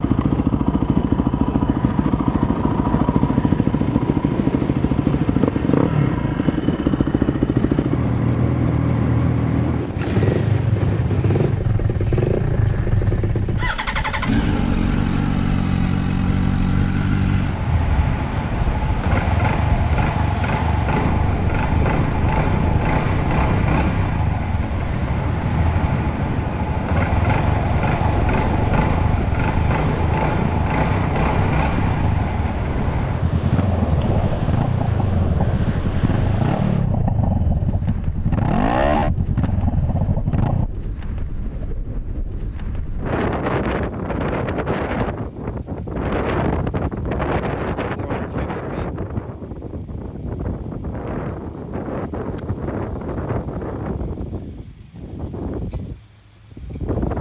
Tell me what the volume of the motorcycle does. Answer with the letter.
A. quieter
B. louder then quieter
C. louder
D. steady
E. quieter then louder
D.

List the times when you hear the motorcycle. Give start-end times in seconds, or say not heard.
0.0-40.7.